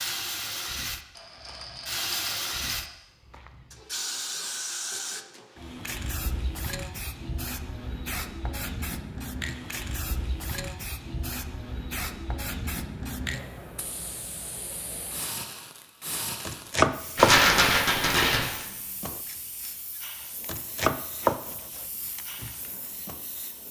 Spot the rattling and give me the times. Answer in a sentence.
The rattling can be heard from 1.1 to 2.9 s and from 17.1 to 18.5 s.